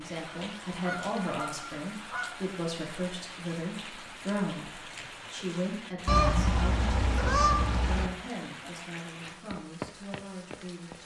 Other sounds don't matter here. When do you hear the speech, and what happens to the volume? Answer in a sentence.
You can hear the speech from 0.0 to 11.0 s, getting quieter.